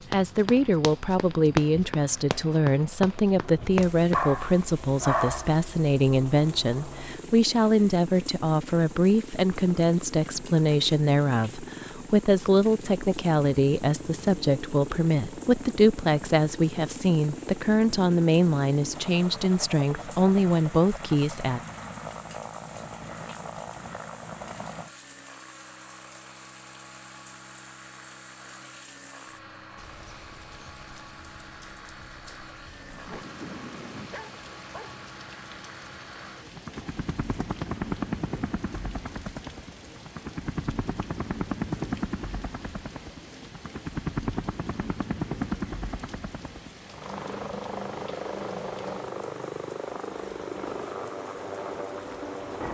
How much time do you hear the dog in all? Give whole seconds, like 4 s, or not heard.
4 s.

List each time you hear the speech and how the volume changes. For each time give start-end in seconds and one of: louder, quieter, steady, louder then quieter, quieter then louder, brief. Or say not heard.
0.1-21.6 steady.